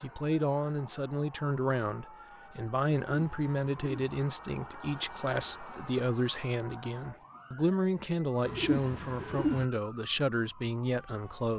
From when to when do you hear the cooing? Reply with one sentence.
The cooing can be heard from 3.0 to 4.1 s and from 8.4 to 9.7 s.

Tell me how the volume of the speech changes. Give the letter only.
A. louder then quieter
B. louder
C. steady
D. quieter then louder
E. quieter
C.